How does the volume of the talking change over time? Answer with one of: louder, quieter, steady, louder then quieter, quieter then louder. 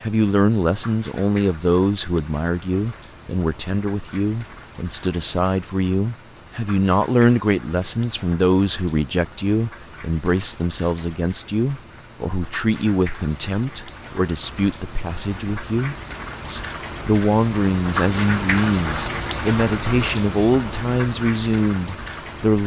steady.